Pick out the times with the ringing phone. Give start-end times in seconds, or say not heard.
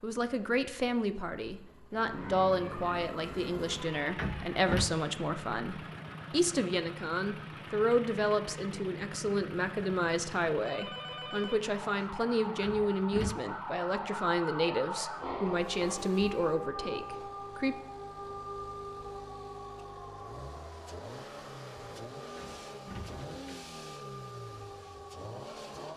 10.6-12.1.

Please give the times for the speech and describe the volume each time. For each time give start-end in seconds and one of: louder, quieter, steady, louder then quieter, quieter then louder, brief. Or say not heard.
0.0-17.8 steady.